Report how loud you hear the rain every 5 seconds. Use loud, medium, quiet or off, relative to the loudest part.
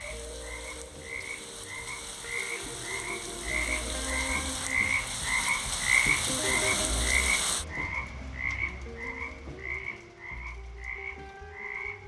medium, loud, off.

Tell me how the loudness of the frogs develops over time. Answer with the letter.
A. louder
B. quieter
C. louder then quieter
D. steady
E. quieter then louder
C.